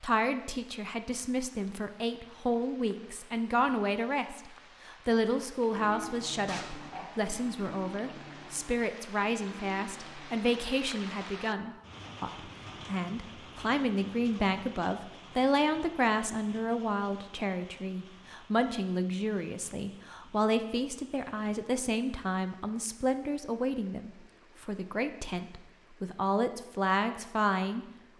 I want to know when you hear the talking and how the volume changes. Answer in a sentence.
You can hear the talking from 0.0 to 27.9 s, at a steady volume.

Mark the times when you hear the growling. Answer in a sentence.
You can hear the growling from 6.5 to 7.1 s.